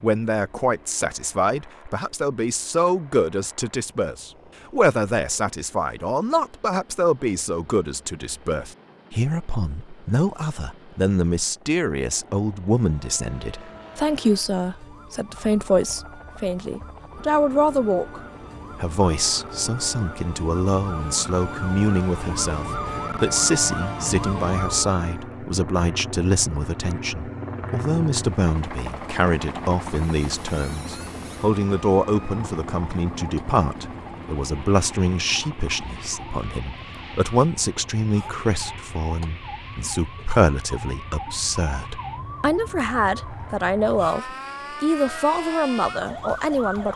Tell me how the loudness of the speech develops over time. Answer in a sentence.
The volume of the speech stays about the same.